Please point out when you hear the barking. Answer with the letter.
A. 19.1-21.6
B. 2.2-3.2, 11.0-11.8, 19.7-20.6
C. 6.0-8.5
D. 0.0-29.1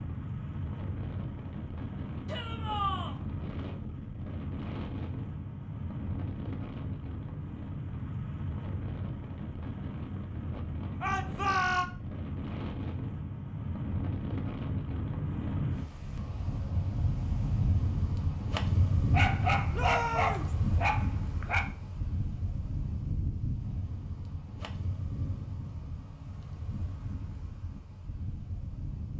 A.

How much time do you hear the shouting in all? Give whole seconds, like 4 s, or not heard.
3 s.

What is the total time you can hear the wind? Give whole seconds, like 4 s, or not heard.
29 s.